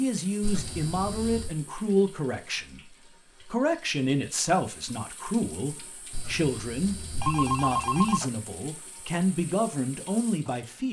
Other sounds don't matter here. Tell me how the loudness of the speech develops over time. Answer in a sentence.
The loudness of the speech stays about the same.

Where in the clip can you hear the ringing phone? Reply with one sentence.
The ringing phone can be heard from 0.4 to 1.6 s and from 6.1 to 8.3 s.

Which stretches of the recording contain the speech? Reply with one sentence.
You can hear the speech from 0.0 to 10.8 s.